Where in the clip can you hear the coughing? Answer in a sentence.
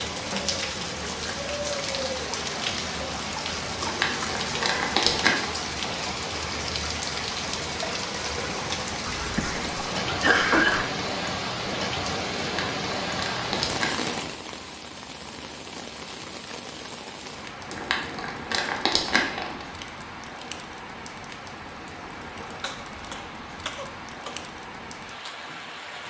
The coughing can be heard from 9.2 to 10.8 s and from 22.6 to 24.4 s.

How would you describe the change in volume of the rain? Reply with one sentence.
The volume of the rain goes down.